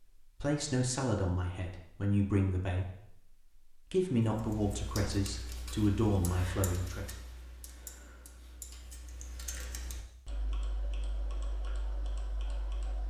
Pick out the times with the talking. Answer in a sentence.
The talking can be heard from 0.4 to 7.0 s.